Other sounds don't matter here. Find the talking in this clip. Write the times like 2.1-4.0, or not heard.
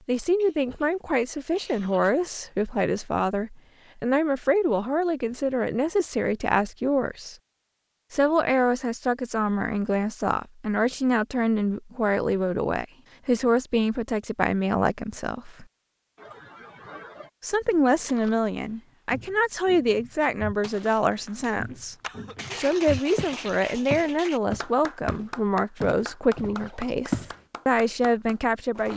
0.1-7.3, 8.1-15.7, 17.4-21.9, 22.6-28.9.